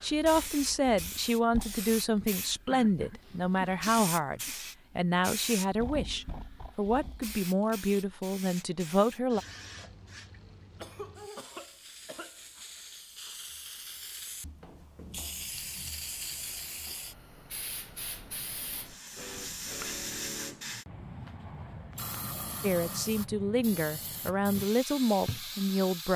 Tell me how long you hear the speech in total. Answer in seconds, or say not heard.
13 s.